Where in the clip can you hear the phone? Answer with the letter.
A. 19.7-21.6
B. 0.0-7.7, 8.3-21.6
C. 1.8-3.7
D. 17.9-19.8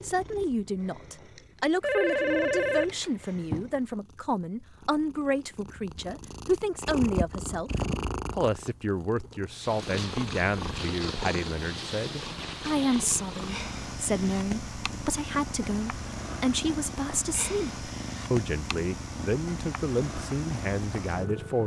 C.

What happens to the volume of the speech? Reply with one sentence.
The volume of the speech stays about the same.